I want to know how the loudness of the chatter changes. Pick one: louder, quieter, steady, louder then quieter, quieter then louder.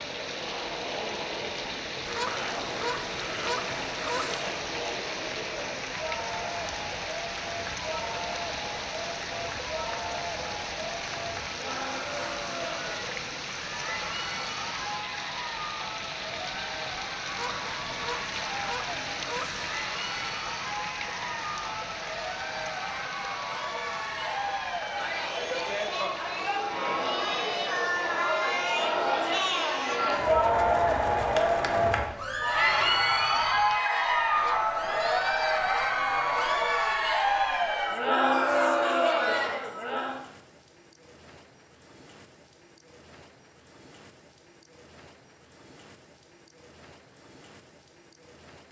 louder.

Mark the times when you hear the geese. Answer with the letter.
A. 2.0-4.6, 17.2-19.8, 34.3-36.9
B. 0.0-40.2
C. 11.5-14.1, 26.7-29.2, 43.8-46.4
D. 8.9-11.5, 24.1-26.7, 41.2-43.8
A.